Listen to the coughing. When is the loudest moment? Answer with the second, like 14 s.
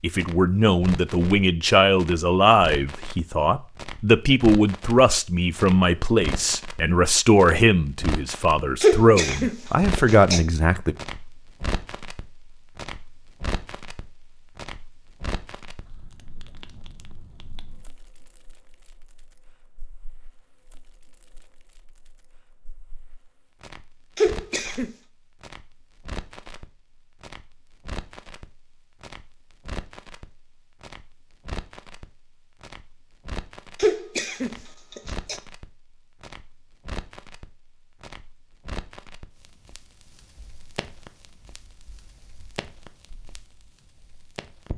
9 s.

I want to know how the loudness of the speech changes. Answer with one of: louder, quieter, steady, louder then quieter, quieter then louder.
steady.